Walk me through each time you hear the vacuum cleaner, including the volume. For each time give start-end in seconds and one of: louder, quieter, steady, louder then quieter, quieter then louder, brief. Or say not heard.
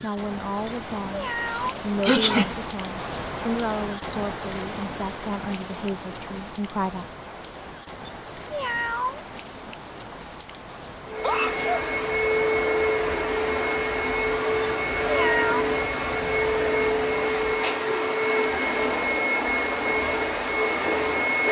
11.1-21.4 steady.